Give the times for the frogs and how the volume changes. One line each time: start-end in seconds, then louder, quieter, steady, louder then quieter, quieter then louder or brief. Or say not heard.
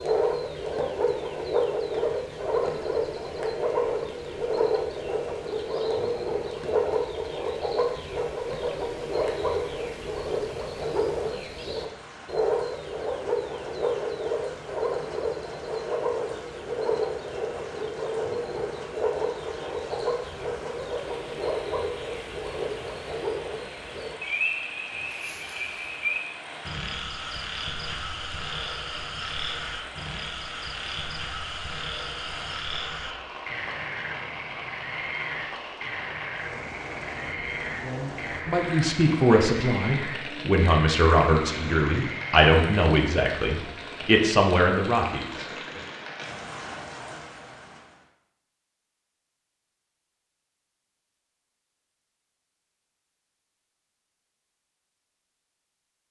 0.0-42.9 quieter.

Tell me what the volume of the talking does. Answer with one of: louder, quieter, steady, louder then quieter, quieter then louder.
steady.